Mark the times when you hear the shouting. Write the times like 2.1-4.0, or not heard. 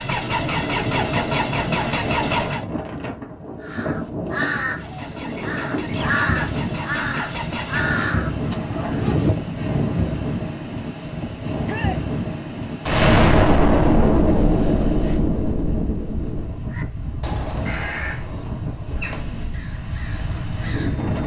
11.7-12.1.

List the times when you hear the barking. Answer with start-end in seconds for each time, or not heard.
not heard.